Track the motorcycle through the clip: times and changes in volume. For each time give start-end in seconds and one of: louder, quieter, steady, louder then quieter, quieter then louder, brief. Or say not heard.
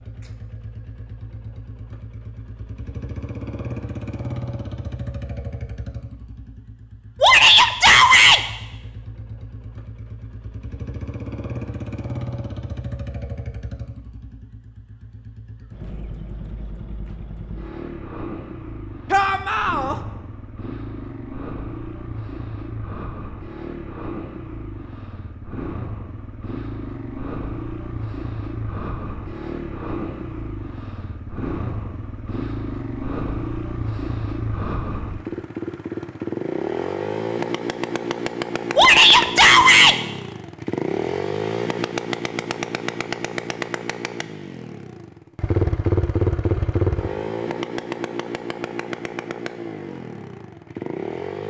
0.0-51.4 louder.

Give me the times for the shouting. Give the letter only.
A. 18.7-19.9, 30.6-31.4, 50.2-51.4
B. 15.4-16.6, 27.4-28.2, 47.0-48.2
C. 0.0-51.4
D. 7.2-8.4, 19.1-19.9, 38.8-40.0
D.